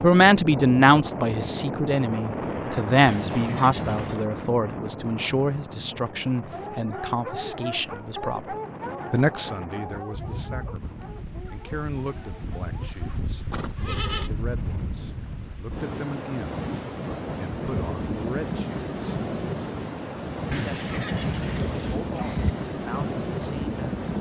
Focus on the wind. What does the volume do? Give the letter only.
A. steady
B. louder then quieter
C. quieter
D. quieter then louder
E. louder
D.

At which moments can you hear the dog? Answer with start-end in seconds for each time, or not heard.
6.5-13.2.